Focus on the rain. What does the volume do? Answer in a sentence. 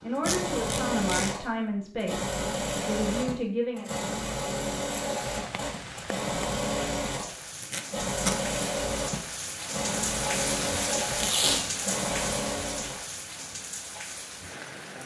The volume of the rain goes up, then down.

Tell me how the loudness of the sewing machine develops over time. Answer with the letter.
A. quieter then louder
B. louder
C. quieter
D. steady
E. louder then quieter
D.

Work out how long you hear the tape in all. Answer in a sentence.
The tape can be heard for 3 seconds in total.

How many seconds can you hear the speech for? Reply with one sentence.
You can hear the speech for 4 seconds altogether.